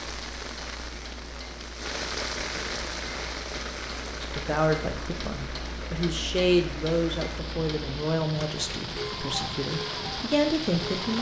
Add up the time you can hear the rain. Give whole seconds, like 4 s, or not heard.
11 s.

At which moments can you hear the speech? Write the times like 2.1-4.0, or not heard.
4.2-11.1.